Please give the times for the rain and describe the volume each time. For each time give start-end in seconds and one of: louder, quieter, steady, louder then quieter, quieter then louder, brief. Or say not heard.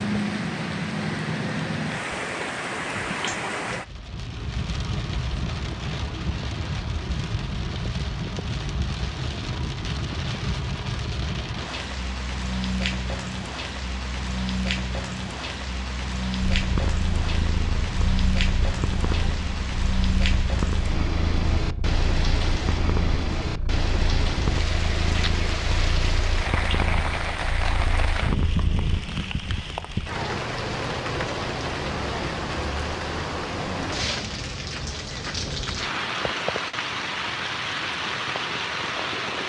0.0-39.4 steady.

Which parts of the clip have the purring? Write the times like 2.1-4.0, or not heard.
16.5-29.1.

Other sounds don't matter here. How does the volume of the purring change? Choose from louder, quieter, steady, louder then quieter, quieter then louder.
steady.